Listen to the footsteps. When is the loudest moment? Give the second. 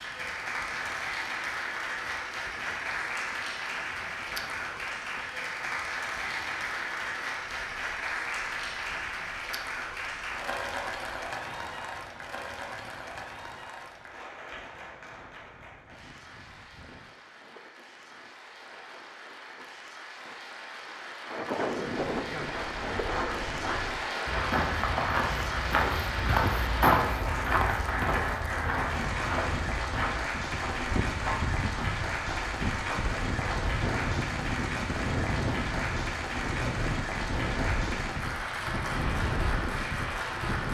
27 s.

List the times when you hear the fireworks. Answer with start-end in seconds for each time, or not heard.
not heard.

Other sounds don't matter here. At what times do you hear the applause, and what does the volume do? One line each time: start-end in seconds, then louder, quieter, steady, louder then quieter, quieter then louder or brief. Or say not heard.
0.0-40.6 quieter then louder.